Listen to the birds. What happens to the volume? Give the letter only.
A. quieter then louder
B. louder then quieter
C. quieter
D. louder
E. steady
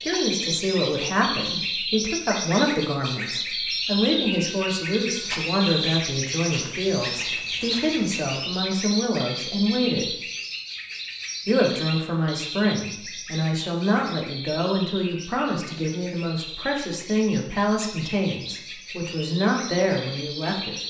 C.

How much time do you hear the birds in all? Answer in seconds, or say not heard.
21 s.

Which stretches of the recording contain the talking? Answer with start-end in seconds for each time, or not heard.
0.0-10.2, 11.4-20.8.